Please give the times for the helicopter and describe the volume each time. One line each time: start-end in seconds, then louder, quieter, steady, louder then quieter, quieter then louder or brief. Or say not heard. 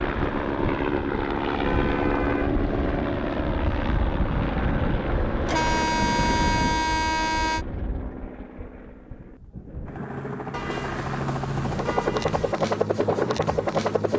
0.0-14.1 quieter then louder.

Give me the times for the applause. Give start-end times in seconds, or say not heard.
not heard.